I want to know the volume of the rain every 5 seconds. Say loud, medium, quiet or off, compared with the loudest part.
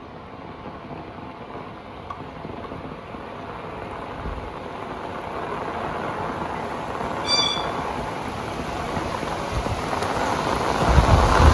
quiet, medium, loud.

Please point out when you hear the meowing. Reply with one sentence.
The meowing can be heard from 6.5 to 7.6 s.